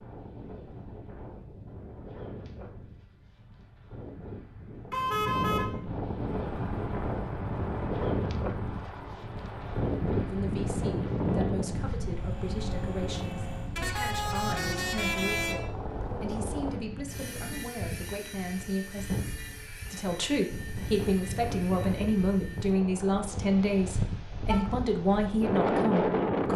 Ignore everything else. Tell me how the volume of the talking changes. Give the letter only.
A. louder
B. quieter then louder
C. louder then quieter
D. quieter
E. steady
A.